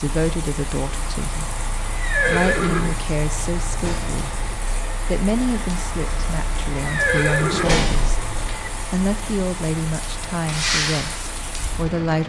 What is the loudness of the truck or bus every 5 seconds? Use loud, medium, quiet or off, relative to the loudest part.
medium, loud, loud.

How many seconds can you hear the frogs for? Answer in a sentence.
The frogs can't be heard in this clip.